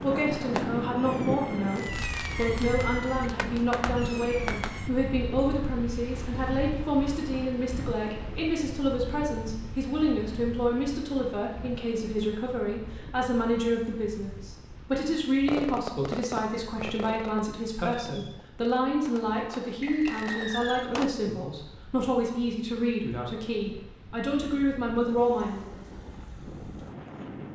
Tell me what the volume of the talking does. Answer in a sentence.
The volume of the talking stays about the same.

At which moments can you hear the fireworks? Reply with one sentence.
The fireworks can be heard from 0.0 to 4.9 s and from 15.4 to 21.1 s.